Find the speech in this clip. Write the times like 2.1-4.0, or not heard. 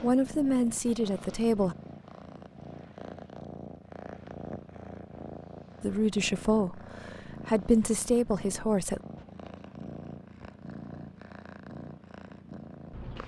0.0-1.8, 5.8-9.0.